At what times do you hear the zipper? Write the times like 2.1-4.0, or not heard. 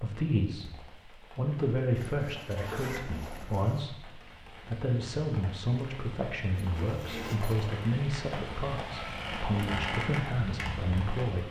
1.9-3.9, 6.5-7.8.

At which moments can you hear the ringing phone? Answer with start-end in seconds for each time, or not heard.
not heard.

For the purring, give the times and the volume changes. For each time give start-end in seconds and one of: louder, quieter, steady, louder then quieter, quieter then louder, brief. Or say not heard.
not heard.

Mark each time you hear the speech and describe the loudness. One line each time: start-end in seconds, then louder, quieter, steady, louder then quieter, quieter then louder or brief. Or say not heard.
0.0-0.7 brief
1.3-11.4 steady.